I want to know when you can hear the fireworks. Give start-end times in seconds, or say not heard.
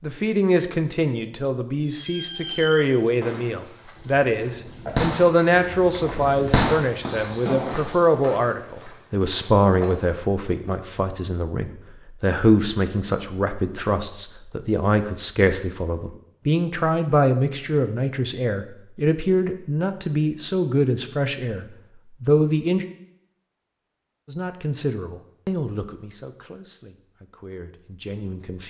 1.9-8.0.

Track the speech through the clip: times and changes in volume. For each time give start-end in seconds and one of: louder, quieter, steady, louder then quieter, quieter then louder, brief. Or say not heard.
0.0-22.9 steady
24.2-28.6 quieter then louder.